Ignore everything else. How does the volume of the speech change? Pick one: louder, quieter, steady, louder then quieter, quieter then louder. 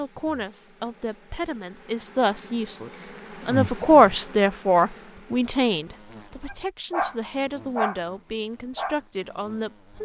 louder then quieter.